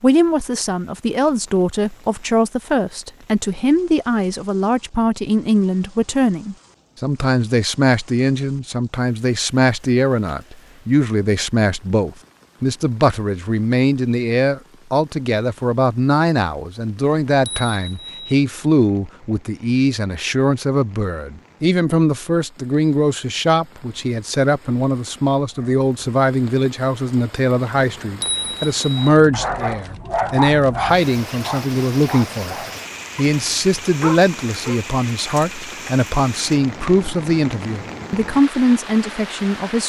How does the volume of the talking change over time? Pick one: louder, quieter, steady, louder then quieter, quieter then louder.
steady.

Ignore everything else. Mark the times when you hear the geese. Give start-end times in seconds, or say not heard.
not heard.